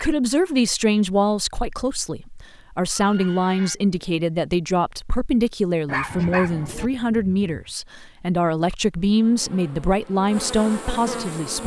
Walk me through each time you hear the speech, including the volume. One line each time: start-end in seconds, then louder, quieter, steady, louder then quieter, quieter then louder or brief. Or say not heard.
0.0-11.6 steady.